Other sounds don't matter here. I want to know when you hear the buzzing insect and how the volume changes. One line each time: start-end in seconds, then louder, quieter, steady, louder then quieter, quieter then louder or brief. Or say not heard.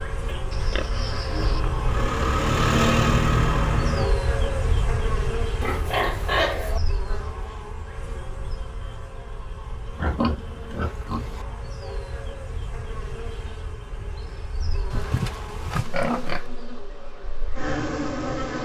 0.0-18.6 quieter then louder.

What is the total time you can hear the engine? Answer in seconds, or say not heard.
4 s.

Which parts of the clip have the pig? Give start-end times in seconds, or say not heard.
0.5-1.6, 5.6-6.8, 9.9-11.4, 14.9-16.4.